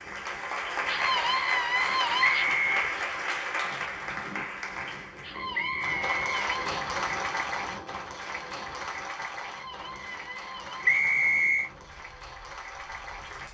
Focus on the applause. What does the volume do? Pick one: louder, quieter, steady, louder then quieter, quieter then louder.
quieter.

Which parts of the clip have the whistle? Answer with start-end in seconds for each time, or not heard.
2.2-2.9, 5.5-6.5, 10.8-11.7.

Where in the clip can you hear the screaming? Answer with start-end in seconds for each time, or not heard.
0.8-2.5, 5.2-6.6, 9.4-11.0.